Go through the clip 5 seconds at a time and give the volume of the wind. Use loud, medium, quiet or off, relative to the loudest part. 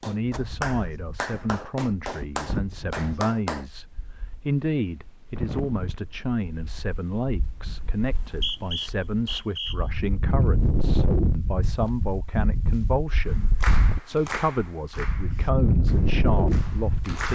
quiet, quiet, loud, loud.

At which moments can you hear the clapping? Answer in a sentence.
You can hear the clapping from 0.0 to 3.6 s and from 13.2 to 17.3 s.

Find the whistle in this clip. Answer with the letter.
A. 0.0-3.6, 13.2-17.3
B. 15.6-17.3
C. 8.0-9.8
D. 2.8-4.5
C.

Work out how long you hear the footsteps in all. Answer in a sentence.
The footsteps can't be heard in this clip.